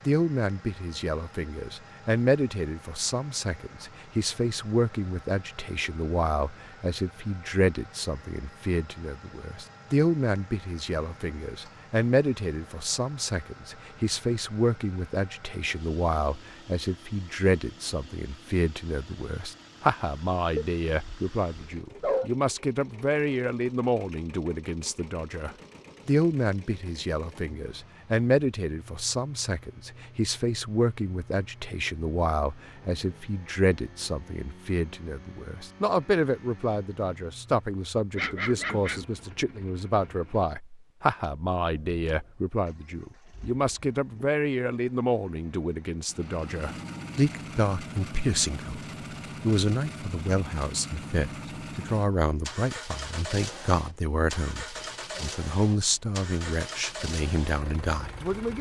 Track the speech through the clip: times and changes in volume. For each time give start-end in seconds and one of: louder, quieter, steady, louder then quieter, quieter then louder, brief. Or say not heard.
0.1-58.5 steady.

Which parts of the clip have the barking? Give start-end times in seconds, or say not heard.
20.6-22.3, 38.1-39.0.